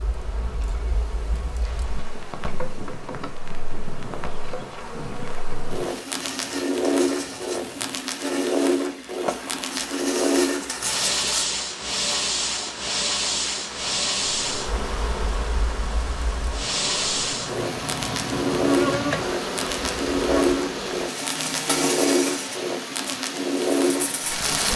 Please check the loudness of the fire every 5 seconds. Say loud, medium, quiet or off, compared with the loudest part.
quiet, loud, loud, loud, loud.